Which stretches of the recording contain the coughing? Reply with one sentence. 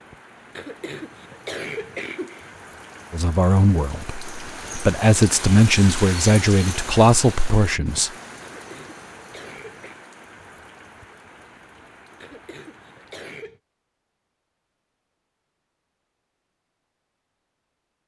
You can hear the coughing from 0.6 to 2.5 s, from 8.4 to 10.0 s and from 12.2 to 13.6 s.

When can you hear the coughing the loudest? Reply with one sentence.
The loudest moment of the coughing is at 2 seconds.